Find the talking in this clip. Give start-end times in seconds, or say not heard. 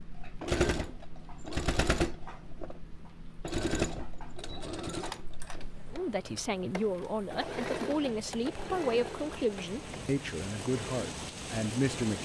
5.9-12.1.